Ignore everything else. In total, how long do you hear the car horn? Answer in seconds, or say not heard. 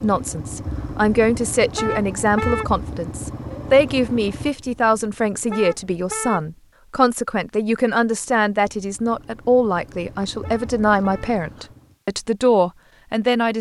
3 s.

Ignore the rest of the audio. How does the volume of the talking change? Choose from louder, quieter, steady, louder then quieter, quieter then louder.
steady.